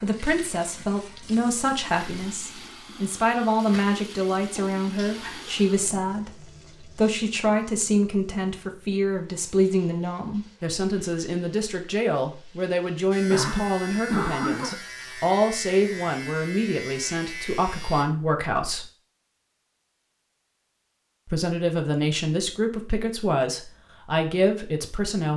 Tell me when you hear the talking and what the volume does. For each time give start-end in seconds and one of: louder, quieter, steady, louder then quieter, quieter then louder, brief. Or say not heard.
0.0-18.9 steady
21.2-25.3 steady.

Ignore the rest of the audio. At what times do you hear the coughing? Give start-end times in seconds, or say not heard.
4.5-5.5, 13.3-14.8.